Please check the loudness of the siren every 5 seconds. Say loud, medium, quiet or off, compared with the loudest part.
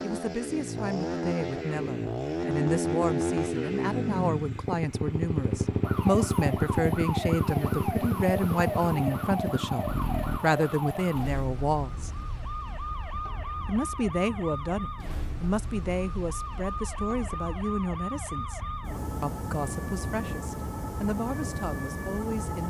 off, loud, loud, loud, loud.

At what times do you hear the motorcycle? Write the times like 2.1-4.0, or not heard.
0.0-10.4.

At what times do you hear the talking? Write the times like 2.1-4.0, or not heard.
0.0-12.1, 13.7-18.6, 19.2-22.6.